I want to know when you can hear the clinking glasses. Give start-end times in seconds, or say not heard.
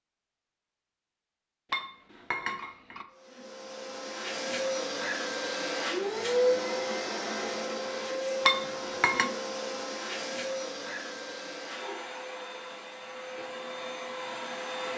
1.7-3.0, 8.4-9.3.